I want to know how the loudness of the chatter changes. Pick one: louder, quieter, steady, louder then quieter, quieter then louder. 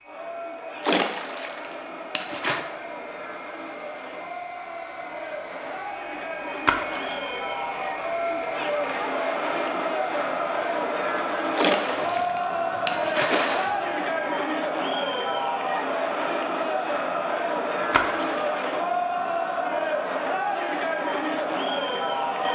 louder.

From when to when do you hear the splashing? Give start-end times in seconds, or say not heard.
0.8-2.6, 6.7-7.3, 11.6-13.8, 17.9-18.6.